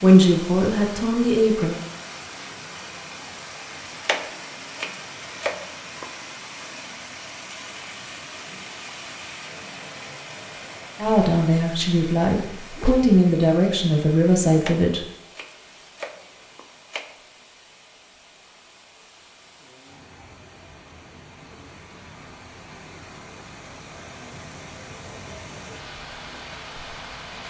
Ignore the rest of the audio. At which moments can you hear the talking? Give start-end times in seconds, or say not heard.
0.0-1.8, 11.0-15.0.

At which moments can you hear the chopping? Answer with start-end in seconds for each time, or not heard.
4.0-6.1, 14.6-17.1.